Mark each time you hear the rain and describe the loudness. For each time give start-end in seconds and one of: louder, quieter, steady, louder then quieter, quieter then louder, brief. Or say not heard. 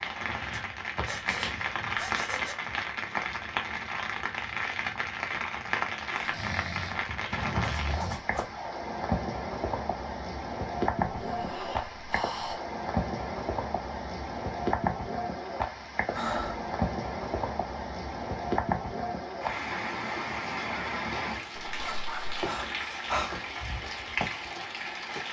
0.0-25.2 steady.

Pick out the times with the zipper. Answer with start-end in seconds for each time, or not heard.
7.6-8.5, 21.6-22.4.